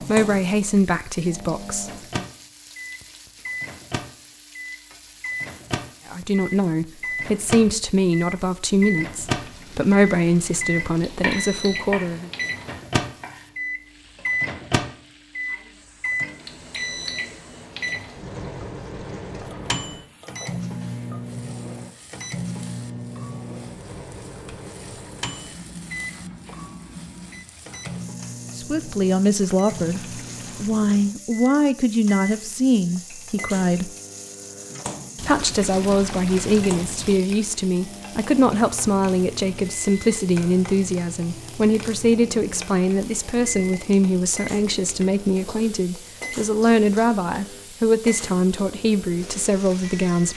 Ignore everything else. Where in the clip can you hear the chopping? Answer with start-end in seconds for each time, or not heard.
11.2-13.4.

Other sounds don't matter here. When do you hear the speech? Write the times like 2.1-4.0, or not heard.
0.0-2.2, 6.1-12.3, 28.6-33.9, 35.2-50.3.